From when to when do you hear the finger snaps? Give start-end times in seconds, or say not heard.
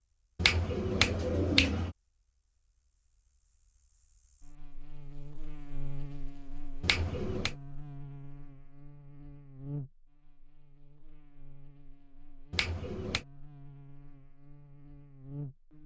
0.3-1.9, 6.8-7.5, 12.5-13.2.